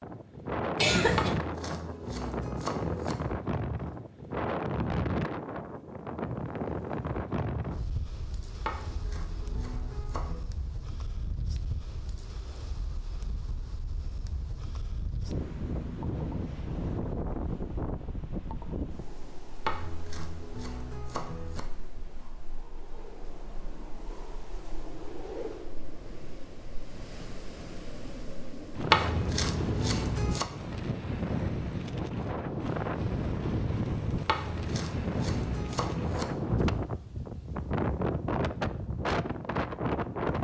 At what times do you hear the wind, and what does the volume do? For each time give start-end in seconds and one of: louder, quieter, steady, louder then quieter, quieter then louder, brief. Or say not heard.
0.0-40.3 quieter then louder.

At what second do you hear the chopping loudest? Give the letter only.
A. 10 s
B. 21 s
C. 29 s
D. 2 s
C.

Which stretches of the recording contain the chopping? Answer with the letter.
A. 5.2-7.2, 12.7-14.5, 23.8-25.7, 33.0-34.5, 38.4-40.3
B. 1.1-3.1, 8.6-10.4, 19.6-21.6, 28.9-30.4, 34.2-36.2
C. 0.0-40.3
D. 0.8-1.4
B.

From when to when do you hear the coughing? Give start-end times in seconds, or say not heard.
0.8-1.4.